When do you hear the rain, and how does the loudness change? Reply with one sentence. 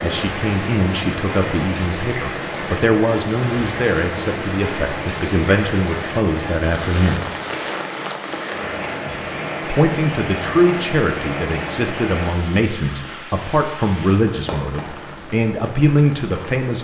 You can hear the rain from 0.0 to 16.8 s, getting quieter.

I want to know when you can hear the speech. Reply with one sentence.
You can hear the speech from 0.0 to 7.2 s and from 9.7 to 16.8 s.